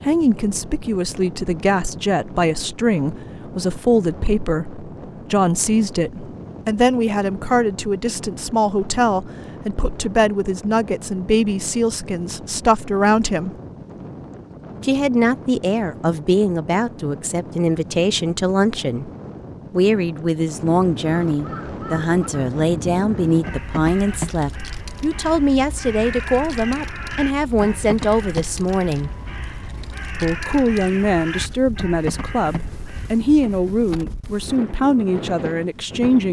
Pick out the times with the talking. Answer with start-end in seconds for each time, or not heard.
0.1-13.5, 14.8-19.1, 19.7-29.1, 30.2-36.2.